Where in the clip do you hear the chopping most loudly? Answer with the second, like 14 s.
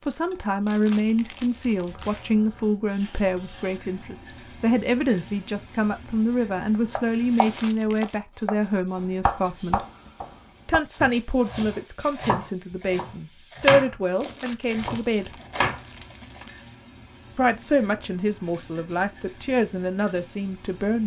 14 s.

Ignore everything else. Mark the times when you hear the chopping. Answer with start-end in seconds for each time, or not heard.
7.0-16.4.